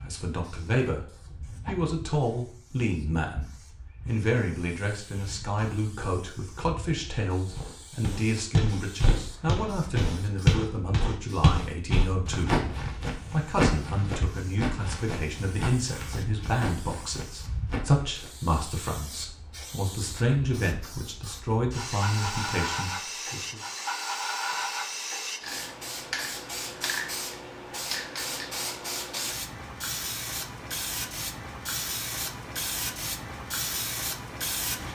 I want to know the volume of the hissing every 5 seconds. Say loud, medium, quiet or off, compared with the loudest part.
quiet, quiet, medium, medium, loud, loud, loud.